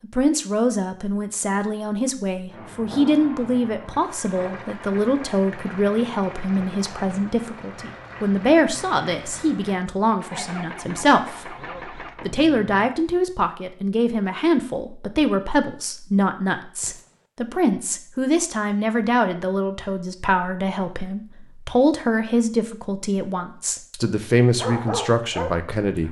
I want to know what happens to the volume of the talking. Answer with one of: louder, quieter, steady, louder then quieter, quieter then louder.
steady.